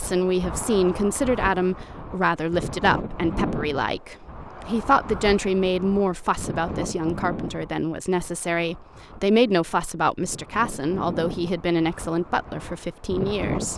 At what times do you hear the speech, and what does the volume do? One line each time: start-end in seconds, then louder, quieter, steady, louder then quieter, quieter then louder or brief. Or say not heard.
0.0-13.7 steady.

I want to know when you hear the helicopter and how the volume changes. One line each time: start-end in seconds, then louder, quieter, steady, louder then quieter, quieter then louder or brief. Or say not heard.
not heard.